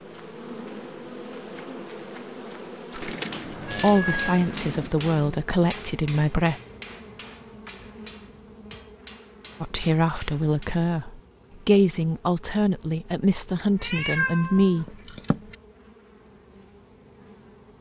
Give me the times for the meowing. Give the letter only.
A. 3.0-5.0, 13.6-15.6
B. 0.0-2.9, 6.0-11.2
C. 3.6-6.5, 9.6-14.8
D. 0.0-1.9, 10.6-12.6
A.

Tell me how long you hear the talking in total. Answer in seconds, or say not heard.
8 s.